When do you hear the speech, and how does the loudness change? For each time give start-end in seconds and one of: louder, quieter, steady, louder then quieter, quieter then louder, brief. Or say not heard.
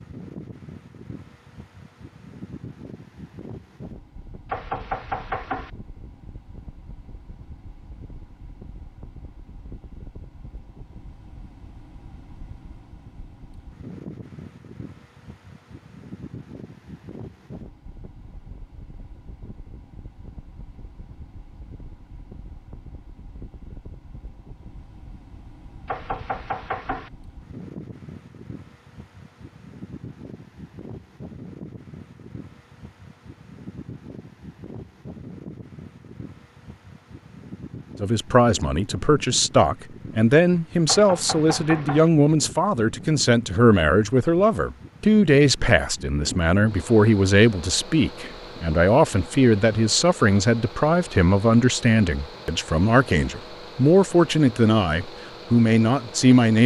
38.0-56.6 steady.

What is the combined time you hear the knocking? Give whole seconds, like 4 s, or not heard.
4 s.